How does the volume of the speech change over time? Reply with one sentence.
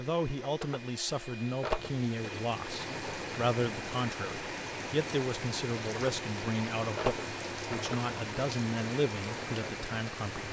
The loudness of the speech stays about the same.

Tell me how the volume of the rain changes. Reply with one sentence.
The volume of the rain stays about the same.